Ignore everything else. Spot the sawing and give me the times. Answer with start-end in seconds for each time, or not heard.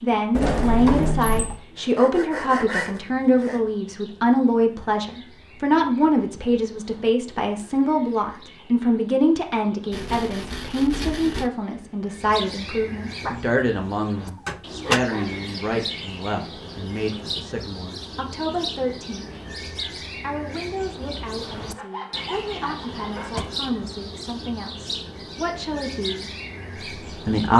1.8-3.6, 9.9-11.5, 21.7-23.6.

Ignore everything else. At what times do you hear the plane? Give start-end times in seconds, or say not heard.
not heard.